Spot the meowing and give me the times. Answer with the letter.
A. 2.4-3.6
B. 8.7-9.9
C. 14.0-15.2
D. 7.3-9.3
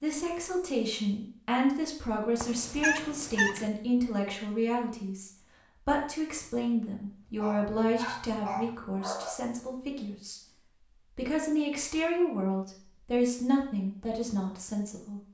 A.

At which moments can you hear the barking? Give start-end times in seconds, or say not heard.
7.3-9.3.